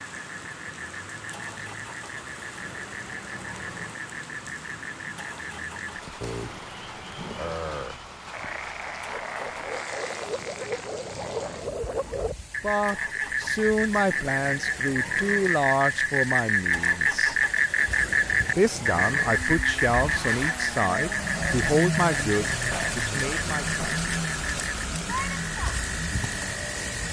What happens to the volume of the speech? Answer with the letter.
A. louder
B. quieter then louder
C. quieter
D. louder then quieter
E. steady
E.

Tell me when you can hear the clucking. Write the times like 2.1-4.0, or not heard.
not heard.